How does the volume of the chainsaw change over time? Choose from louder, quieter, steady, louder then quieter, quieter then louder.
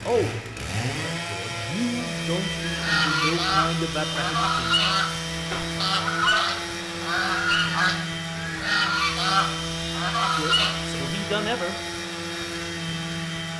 steady.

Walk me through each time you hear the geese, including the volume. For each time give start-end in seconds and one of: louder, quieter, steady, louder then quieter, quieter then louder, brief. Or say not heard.
2.6-10.8 steady.